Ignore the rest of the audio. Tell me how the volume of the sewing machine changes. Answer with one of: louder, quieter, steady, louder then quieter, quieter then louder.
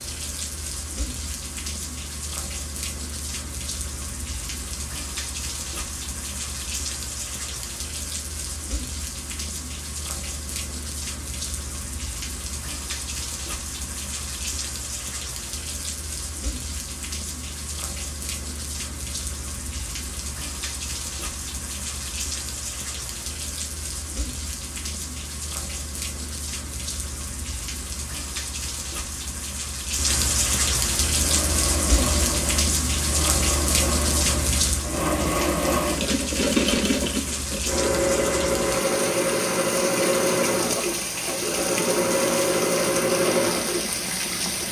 louder.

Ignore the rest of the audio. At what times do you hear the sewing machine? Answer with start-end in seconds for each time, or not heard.
31.1-44.6.